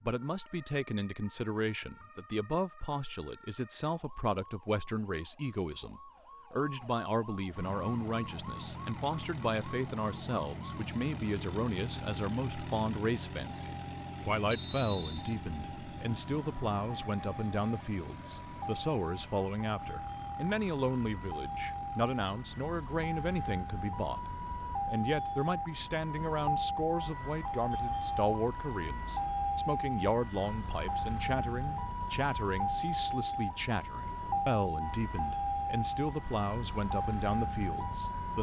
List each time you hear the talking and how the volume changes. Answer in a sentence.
You can hear the talking from 0.0 to 38.3 s, at a steady volume.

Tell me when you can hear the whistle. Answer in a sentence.
You can hear the whistle from 14.5 to 15.3 s.